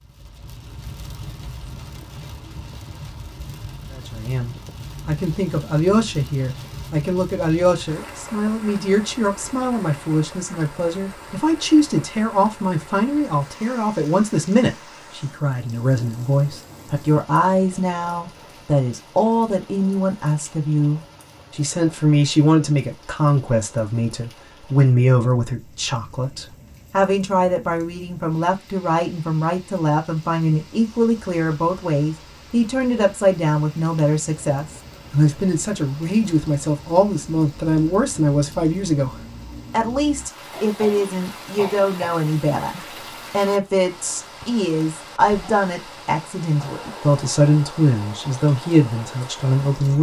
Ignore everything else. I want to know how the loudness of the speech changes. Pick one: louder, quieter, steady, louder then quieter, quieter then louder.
steady.